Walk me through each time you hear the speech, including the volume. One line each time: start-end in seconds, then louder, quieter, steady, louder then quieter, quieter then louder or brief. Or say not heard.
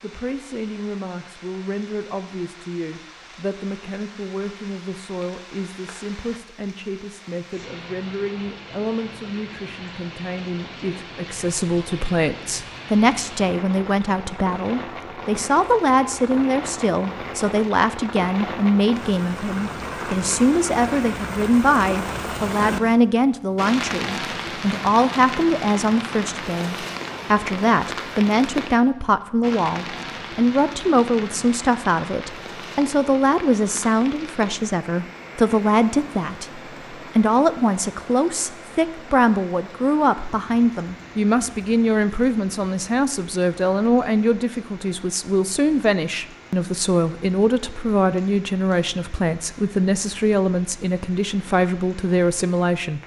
0.0-53.0 louder.